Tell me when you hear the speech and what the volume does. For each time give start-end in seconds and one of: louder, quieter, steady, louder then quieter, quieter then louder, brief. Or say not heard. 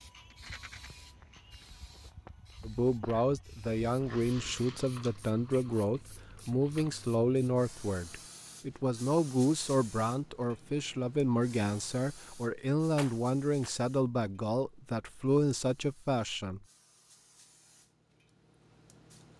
2.6-16.6 steady.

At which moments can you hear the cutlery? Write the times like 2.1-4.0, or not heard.
not heard.